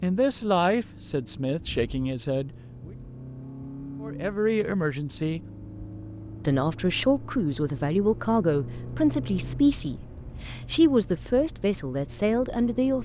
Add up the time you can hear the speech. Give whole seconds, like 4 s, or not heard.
11 s.